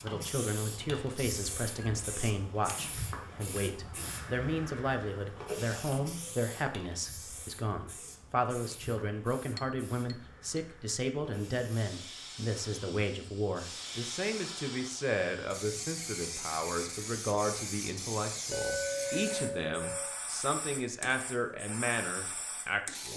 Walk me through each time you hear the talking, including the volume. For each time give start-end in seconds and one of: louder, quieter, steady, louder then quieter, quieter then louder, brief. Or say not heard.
0.0-23.1 steady.